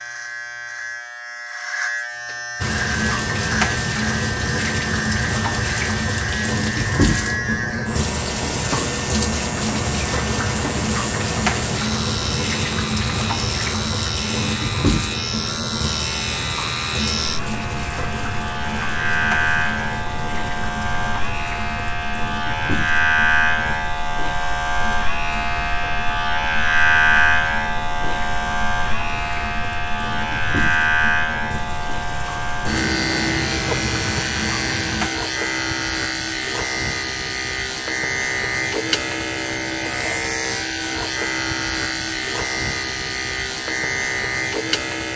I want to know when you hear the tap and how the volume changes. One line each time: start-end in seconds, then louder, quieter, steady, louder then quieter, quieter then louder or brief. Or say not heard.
2.6-35.1 quieter.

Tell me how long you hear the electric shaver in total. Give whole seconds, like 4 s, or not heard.
45 s.